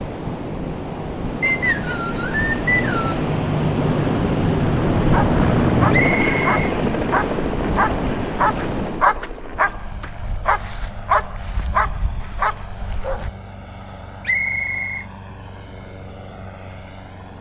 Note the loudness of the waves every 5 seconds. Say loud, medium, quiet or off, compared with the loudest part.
loud, loud, off, off.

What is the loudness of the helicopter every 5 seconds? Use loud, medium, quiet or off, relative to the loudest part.
loud, loud, quiet, quiet.